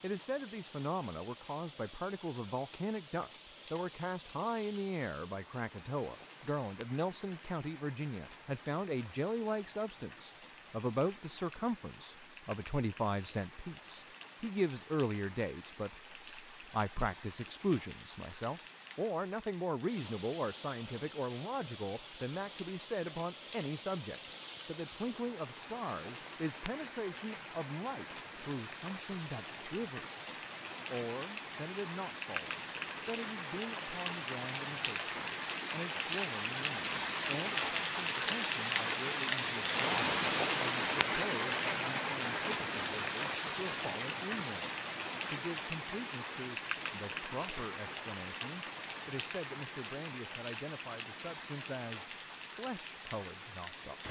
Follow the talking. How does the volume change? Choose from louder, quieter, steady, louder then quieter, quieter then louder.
quieter.